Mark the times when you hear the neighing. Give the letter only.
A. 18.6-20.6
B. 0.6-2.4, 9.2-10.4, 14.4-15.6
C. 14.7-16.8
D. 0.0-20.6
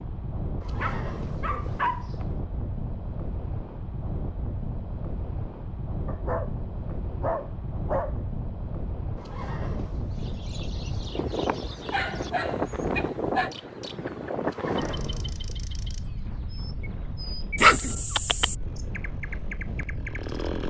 B.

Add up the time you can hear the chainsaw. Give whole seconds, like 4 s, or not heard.
2 s.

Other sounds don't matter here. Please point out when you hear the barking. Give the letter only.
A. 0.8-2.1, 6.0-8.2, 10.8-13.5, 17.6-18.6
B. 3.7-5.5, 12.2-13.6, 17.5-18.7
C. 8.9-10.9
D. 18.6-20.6
A.